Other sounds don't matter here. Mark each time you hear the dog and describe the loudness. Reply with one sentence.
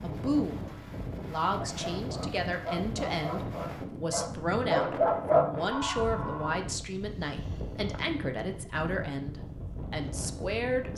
The dog can be heard from 1.7 to 6.5 s, getting louder.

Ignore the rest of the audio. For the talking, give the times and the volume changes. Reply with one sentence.
The talking can be heard briefly from 0.0 to 0.7 s; and from 1.2 to 10.9 s, at a steady volume.